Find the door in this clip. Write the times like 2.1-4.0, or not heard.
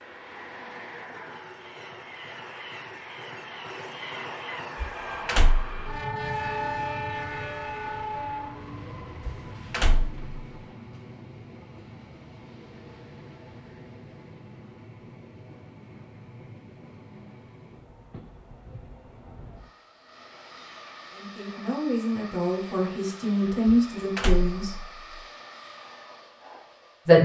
4.8-6.0, 9.2-10.3, 23.6-24.9.